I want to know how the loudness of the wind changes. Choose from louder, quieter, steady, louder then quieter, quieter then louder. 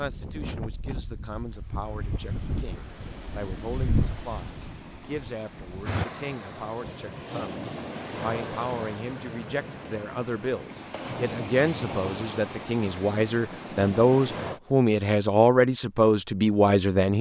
steady.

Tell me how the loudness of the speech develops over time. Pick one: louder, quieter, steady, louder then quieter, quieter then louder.
louder.